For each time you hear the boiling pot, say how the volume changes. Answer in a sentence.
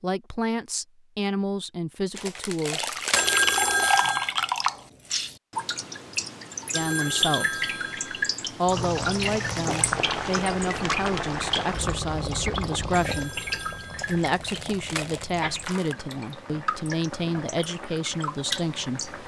The boiling pot can be heard from 8.7 to 19.2 s, getting quieter.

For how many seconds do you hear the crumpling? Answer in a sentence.
The crumpling can be heard for 5 seconds in total.